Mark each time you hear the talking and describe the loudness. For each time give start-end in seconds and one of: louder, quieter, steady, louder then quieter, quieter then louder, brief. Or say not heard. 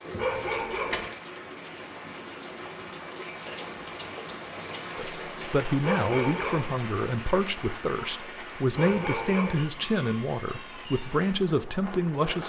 5.0-12.4 steady.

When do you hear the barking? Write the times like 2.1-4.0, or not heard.
0.1-1.1, 5.8-6.7, 8.8-9.7.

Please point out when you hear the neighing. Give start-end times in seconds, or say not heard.
0.0-1.2.